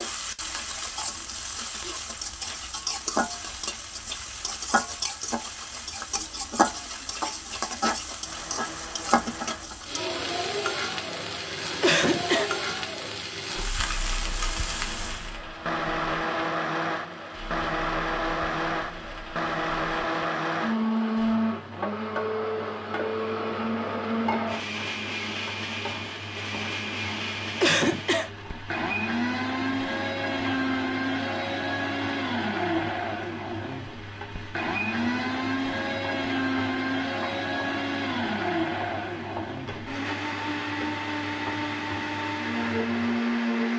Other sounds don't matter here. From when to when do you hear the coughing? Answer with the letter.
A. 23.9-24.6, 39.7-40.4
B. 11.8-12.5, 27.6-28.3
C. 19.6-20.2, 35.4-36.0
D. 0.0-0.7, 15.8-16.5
B.